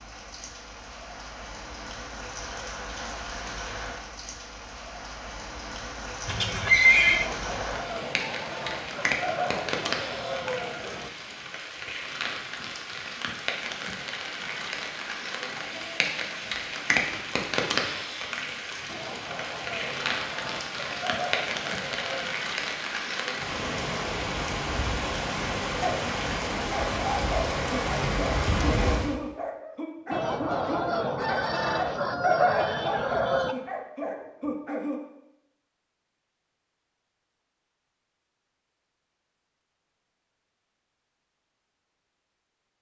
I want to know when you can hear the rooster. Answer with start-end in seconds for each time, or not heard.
7.0-11.1, 18.9-22.3, 30.1-33.5.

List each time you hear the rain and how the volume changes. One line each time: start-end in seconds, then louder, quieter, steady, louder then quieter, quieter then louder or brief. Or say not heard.
0.0-29.1 louder.